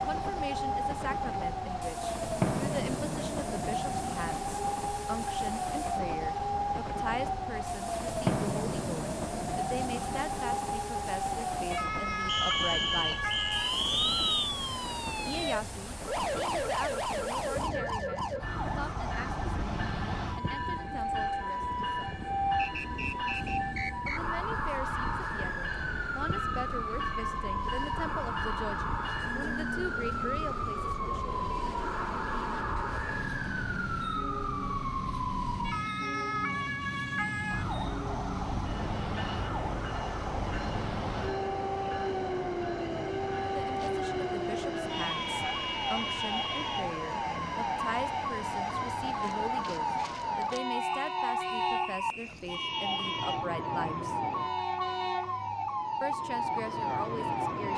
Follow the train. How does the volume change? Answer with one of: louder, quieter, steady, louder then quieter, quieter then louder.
steady.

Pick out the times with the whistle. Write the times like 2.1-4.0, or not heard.
12.2-14.3, 22.6-24.2, 50.8-52.5.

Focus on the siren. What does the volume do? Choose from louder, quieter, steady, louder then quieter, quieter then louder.
steady.